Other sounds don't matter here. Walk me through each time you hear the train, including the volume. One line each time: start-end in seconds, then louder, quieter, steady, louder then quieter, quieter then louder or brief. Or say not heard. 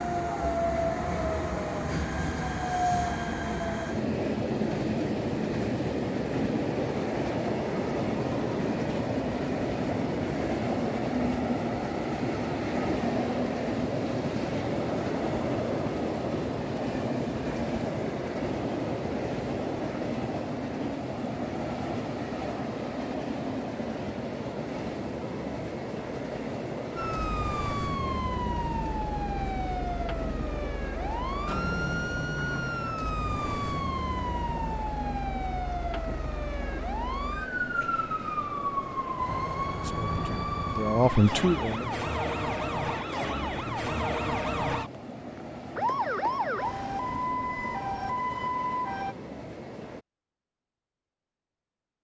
0.0-50.0 quieter.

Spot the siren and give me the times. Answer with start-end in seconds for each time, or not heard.
26.9-49.1.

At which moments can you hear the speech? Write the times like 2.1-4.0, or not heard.
39.8-41.9.